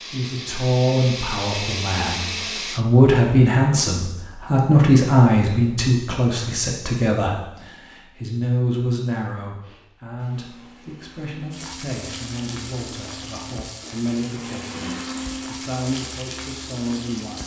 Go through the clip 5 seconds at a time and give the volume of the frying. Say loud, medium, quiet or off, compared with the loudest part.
off, off, loud, loud.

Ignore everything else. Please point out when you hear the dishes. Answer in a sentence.
You can't hear the dishes here.